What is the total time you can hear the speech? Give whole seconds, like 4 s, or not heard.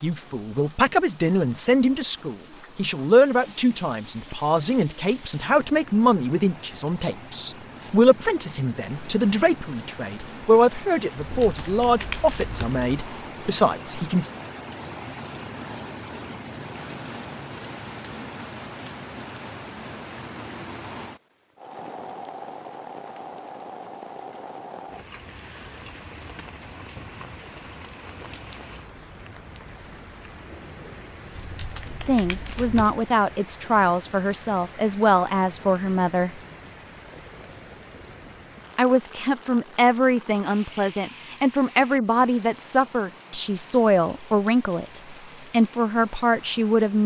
27 s.